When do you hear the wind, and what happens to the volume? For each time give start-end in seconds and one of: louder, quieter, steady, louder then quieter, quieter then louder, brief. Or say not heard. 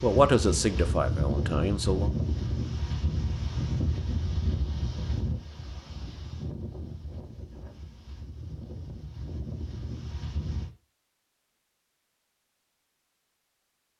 0.0-10.7 quieter.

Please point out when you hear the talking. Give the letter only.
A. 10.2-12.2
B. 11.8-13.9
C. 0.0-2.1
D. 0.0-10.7
C.